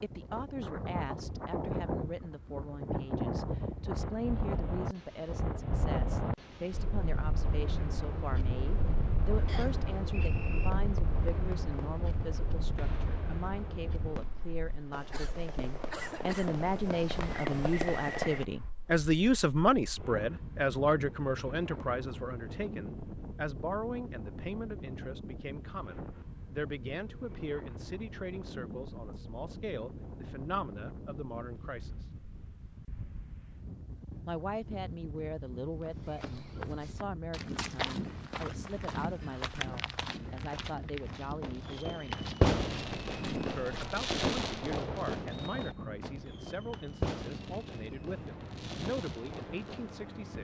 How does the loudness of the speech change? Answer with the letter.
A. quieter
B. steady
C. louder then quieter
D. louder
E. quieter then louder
C.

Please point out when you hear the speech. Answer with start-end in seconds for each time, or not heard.
0.0-32.0, 34.2-42.2, 43.5-50.3.